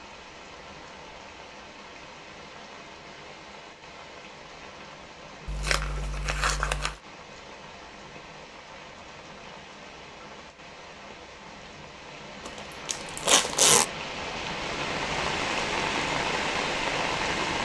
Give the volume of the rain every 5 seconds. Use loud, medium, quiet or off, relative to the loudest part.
quiet, quiet, medium, loud.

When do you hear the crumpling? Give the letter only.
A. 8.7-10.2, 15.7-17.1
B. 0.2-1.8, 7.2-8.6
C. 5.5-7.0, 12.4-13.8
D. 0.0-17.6
C.